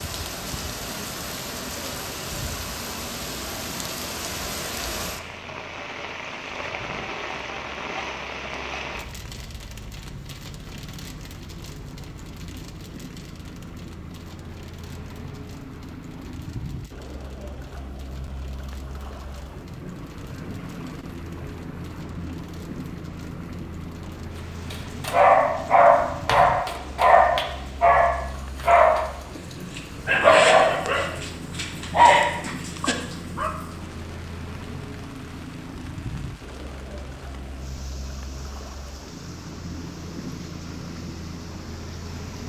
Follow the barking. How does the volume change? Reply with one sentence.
The loudness of the barking stays about the same.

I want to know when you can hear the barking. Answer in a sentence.
You can hear the barking from 24.7 to 33.5 s.